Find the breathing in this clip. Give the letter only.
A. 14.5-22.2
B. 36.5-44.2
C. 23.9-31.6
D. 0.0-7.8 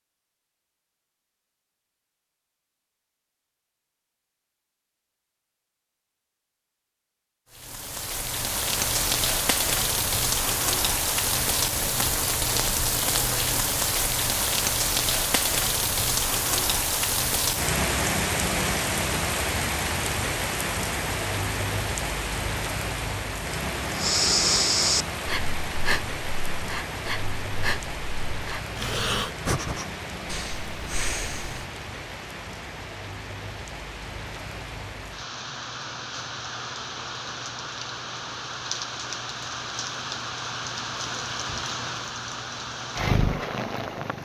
C.